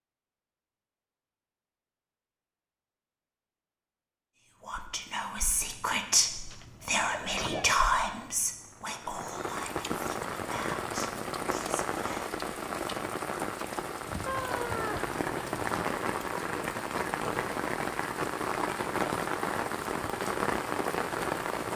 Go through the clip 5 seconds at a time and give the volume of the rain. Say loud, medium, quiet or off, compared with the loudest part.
off, medium, loud, loud, loud.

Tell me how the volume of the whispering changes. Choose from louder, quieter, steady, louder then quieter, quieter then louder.
quieter.